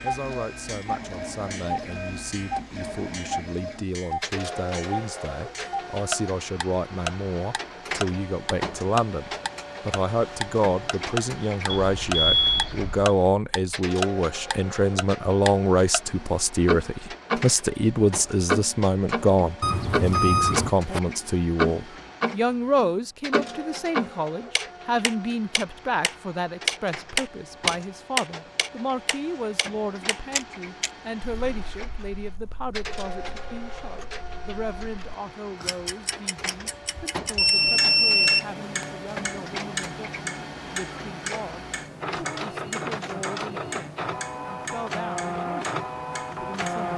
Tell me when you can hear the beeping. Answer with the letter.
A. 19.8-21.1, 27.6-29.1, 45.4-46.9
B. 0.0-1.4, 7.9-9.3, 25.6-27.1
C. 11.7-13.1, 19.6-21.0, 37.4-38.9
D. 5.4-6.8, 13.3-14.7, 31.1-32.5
C.